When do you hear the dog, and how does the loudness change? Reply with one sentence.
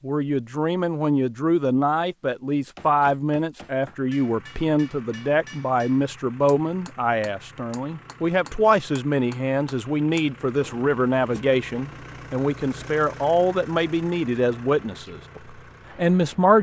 The dog can't be heard in this clip.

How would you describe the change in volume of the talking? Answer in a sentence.
The loudness of the talking stays about the same.